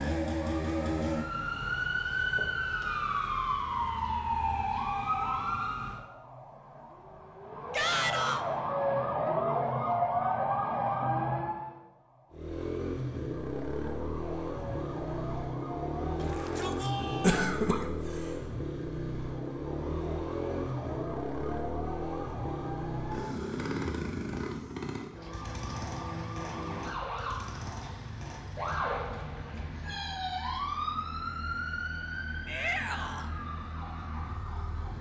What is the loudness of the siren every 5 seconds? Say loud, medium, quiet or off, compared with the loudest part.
loud, loud, loud, medium, medium, medium, medium.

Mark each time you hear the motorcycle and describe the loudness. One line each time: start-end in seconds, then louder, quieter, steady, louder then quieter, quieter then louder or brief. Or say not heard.
0.0-1.6 brief
12.3-34.9 quieter.